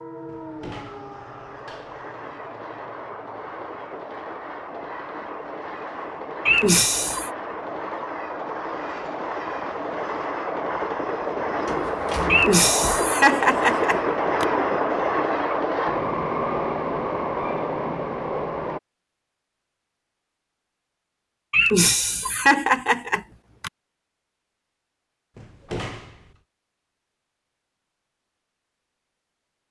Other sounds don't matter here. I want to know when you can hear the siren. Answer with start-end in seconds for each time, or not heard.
not heard.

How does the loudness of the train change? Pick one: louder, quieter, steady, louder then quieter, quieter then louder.
louder.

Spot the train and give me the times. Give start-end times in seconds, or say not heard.
0.0-18.8.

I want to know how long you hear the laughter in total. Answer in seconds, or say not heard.
5 s.